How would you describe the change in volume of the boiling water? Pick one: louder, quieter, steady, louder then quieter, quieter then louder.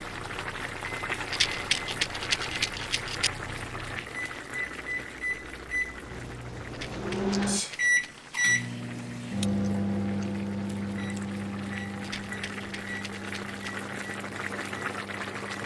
quieter then louder.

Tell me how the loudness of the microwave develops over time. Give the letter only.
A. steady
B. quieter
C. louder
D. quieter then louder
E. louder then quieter
E.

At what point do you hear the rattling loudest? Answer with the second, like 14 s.
2 s.